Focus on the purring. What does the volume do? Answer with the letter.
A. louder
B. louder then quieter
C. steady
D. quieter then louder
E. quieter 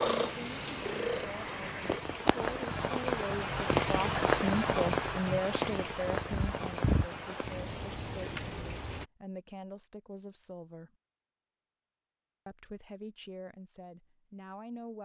C.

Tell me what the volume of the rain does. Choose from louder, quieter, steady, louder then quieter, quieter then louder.
louder then quieter.